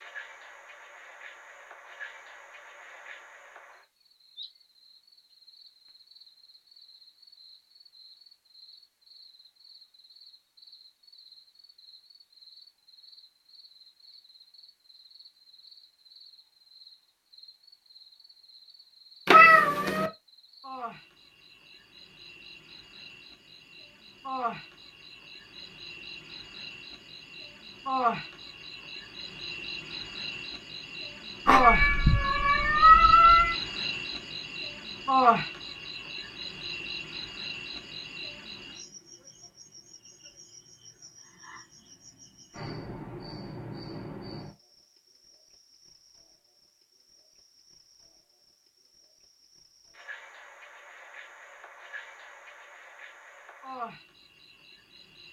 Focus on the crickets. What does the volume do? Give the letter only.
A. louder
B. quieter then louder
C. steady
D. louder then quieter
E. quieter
D.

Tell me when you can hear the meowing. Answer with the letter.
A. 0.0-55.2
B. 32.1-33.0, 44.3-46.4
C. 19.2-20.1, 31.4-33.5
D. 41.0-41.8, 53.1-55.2
C.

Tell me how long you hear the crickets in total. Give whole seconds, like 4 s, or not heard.
55 s.